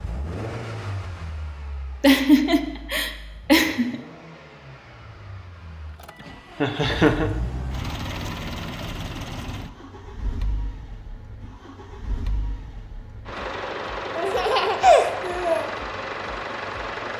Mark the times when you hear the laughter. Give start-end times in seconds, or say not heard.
2.0-4.0, 6.6-7.3, 14.2-15.7.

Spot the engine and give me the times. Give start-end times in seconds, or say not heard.
0.0-17.1.